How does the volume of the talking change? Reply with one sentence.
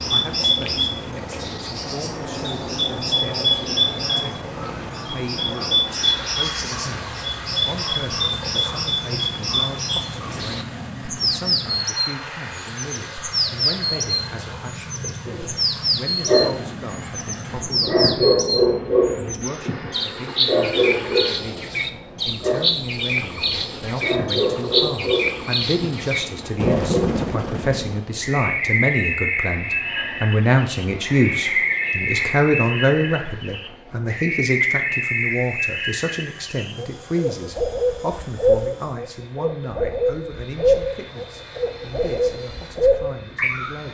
The loudness of the talking goes up, then down.